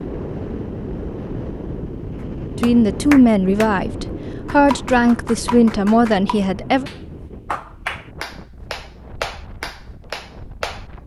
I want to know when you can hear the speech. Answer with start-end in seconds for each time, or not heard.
2.6-6.8.